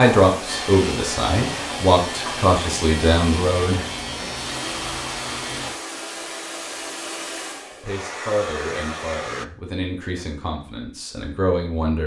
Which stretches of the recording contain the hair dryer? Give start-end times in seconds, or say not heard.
0.0-9.4.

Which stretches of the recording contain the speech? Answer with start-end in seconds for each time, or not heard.
0.0-3.9, 7.8-12.0.